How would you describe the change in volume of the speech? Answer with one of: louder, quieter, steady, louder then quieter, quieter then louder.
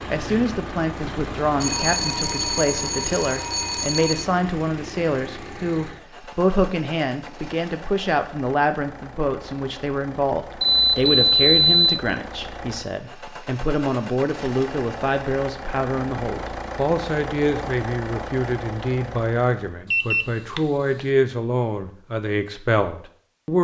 steady.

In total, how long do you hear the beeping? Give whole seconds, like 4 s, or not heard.
5 s.